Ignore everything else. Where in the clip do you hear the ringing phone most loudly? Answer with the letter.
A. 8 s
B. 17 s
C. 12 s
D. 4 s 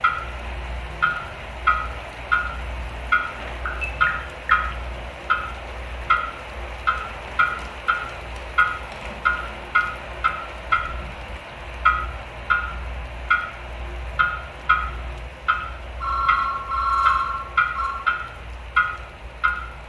B.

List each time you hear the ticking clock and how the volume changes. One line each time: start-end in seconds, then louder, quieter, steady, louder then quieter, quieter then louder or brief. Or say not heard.
0.0-19.8 steady.